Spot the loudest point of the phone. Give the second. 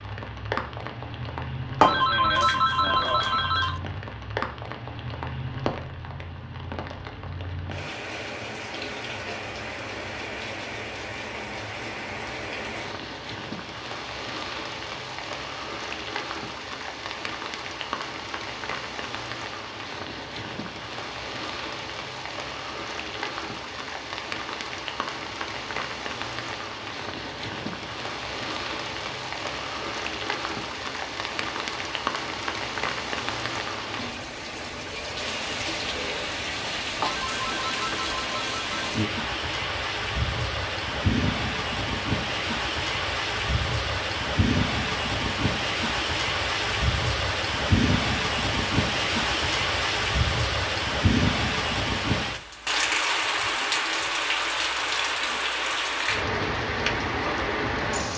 2 s.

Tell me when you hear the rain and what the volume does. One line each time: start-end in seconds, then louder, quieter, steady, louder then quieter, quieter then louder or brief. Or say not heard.
0.0-58.1 louder.